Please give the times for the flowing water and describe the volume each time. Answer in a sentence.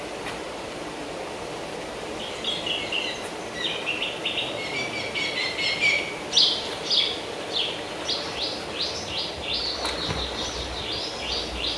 You can hear the flowing water from 0.0 to 11.7 s, at a steady volume.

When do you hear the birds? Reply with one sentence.
The birds can be heard from 2.1 to 11.7 s.